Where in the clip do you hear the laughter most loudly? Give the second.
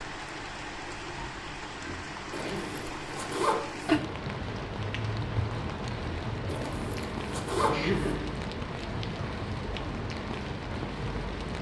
8 s.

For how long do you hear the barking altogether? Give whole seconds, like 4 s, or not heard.
not heard.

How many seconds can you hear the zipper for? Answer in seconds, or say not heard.
3 s.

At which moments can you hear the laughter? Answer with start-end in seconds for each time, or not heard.
2.3-2.8, 7.7-8.3.